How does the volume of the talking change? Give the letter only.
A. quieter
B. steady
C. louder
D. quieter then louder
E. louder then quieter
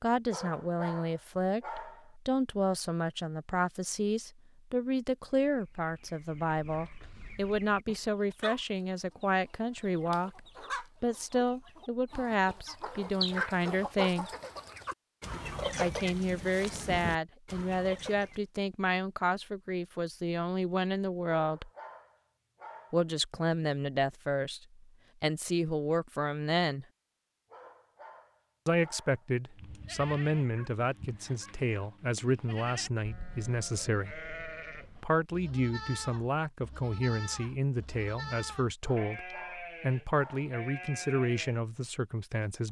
B.